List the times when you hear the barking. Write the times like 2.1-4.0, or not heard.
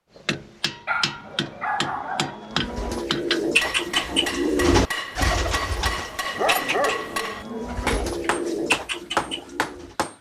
0.8-2.4, 6.3-8.2.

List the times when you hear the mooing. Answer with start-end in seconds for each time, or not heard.
1.2-3.0, 6.2-8.0.